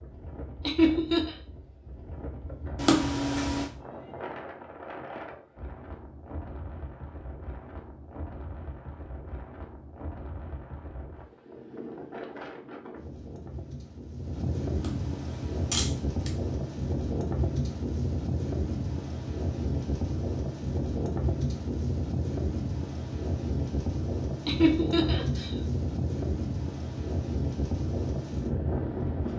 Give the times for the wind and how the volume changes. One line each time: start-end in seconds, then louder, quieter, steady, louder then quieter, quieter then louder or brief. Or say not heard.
0.0-29.3 louder.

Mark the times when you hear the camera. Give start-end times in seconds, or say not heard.
2.8-3.7, 14.8-16.3.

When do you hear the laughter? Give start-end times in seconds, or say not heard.
0.7-1.4, 24.4-25.6.